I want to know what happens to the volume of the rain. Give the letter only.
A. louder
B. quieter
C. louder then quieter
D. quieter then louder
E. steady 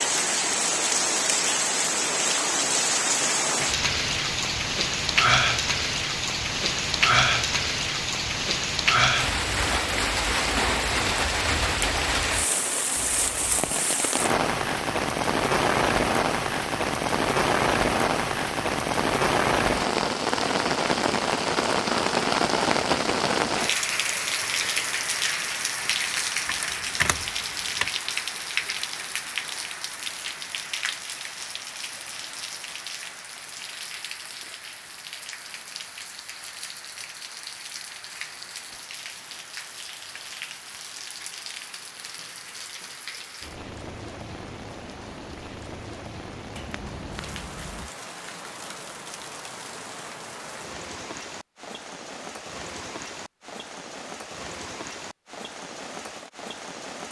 B.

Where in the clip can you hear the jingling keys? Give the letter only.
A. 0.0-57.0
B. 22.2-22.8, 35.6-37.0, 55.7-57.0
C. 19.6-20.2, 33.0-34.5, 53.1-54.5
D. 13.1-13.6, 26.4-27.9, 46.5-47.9
D.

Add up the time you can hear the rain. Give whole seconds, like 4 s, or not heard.
57 s.